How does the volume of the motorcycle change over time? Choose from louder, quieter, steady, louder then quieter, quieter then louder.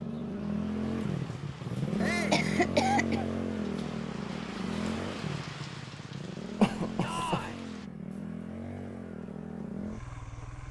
quieter.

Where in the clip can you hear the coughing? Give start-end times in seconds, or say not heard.
2.3-3.3, 6.6-7.5.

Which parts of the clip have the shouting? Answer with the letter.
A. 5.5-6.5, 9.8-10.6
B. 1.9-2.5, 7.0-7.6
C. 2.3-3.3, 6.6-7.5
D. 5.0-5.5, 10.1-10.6
B.